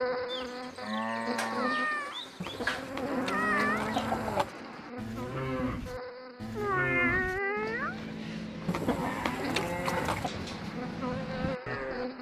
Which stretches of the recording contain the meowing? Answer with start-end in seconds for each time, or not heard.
1.6-4.1, 6.5-8.0.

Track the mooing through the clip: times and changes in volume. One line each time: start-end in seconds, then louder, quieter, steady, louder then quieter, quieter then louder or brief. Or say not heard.
0.2-12.1 steady.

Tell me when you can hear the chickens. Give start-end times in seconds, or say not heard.
2.4-4.5, 8.7-10.3.